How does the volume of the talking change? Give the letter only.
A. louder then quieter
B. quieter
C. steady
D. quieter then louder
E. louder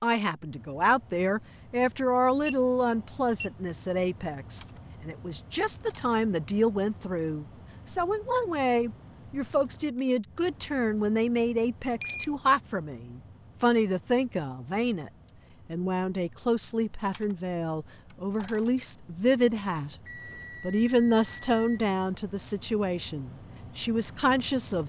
C.